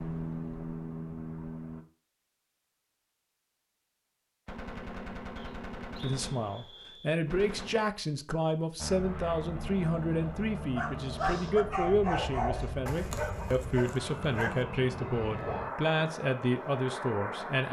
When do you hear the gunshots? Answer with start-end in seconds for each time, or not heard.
4.5-7.8.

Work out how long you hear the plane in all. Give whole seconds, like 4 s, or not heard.
11 s.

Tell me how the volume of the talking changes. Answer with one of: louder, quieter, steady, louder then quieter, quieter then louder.
steady.